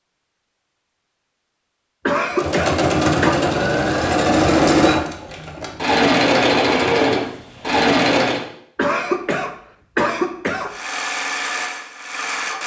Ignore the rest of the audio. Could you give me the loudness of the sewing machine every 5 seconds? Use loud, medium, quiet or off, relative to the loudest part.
loud, loud, medium.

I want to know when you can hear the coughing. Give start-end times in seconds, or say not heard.
2.0-3.4, 8.8-10.8.